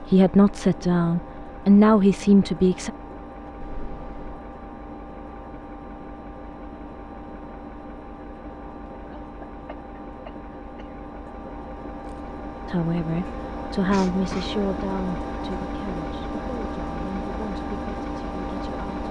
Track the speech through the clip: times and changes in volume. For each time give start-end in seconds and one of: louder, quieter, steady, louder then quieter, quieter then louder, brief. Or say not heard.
0.0-2.9 brief
12.7-19.0 quieter.